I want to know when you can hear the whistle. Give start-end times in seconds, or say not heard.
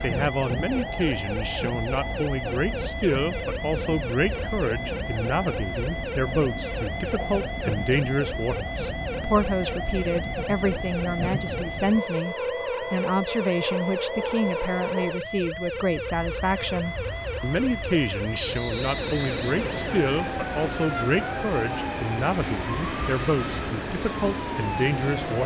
18.4-19.6.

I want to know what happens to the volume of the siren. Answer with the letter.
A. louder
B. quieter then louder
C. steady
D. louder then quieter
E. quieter
C.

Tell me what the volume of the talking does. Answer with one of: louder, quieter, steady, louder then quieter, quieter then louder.
steady.